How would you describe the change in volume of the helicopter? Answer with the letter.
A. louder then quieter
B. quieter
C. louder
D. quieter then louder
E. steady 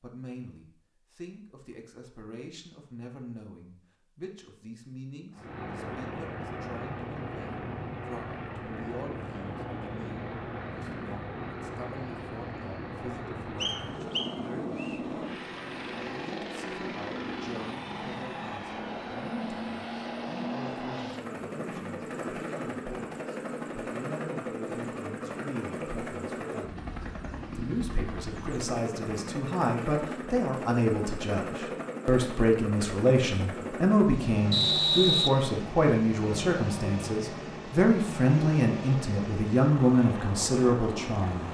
E.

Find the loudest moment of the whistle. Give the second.
35 s.